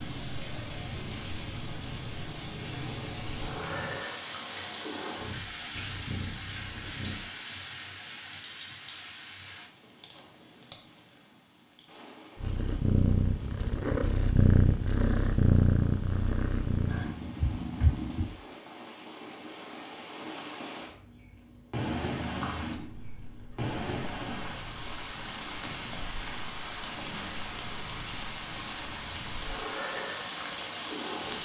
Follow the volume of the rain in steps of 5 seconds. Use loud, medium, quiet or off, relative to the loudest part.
loud, loud, quiet, medium, loud, loud, loud.